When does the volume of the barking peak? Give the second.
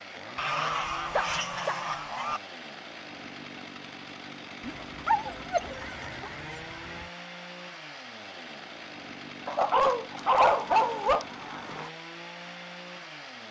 10 s.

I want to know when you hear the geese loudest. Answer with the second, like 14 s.
1 s.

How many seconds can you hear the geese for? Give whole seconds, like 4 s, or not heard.
6 s.